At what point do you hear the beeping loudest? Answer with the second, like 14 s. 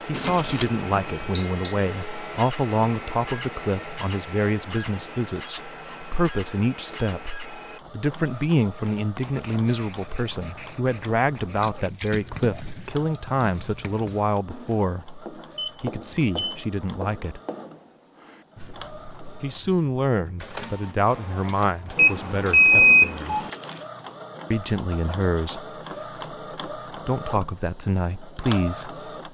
23 s.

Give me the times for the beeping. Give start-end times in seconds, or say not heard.
1.0-1.8, 15.6-16.6, 21.9-23.5.